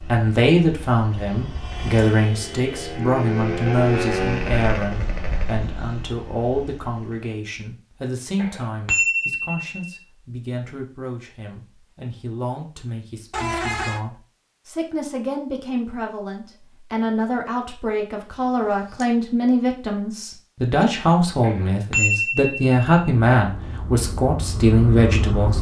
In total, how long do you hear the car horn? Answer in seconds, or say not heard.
3 s.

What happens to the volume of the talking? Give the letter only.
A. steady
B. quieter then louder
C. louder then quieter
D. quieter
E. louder
B.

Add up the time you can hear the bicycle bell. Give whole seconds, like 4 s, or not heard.
3 s.